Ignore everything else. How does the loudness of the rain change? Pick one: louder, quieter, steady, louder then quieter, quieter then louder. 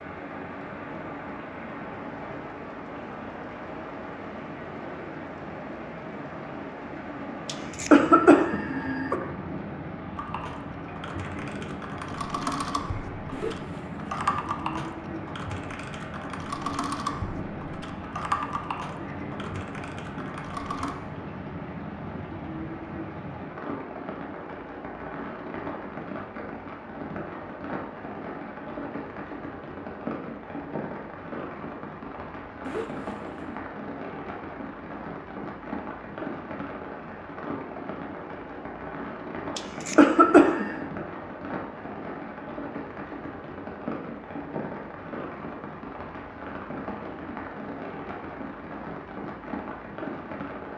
steady.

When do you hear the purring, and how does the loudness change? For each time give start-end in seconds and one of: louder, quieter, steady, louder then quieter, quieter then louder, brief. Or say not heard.
not heard.